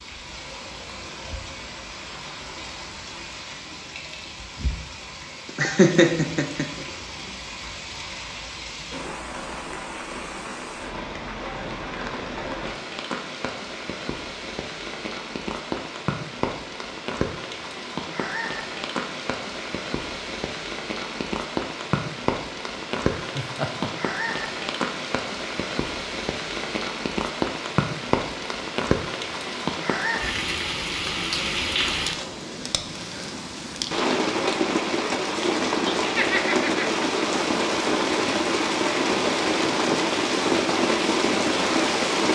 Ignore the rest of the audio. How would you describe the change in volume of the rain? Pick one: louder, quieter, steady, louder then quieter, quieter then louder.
louder.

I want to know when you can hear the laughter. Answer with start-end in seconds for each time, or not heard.
5.5-6.8, 23.1-24.3, 35.9-36.9.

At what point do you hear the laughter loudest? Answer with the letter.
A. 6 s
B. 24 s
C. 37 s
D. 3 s
A.